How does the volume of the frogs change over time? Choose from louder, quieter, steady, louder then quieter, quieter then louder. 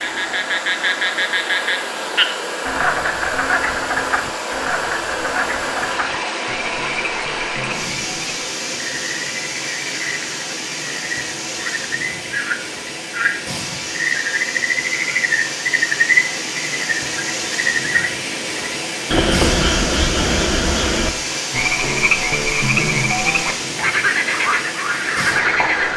quieter then louder.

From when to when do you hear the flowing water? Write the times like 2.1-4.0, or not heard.
0.0-25.9.